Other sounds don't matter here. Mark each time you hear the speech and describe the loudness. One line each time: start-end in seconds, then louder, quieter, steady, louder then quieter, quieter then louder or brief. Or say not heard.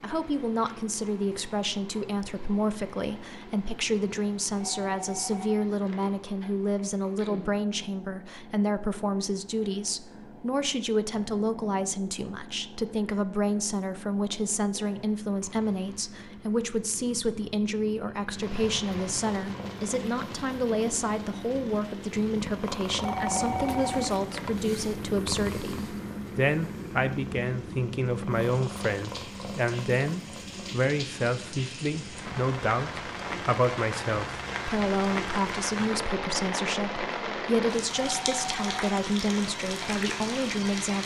0.0-41.0 steady.